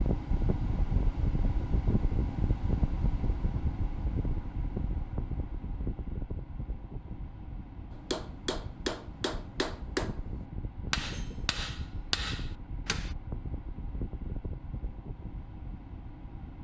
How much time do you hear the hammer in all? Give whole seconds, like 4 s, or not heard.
5 s.